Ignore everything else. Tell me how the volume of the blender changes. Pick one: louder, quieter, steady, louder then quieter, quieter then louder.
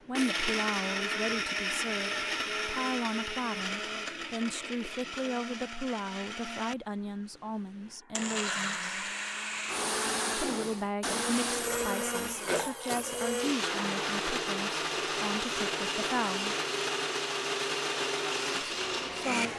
quieter then louder.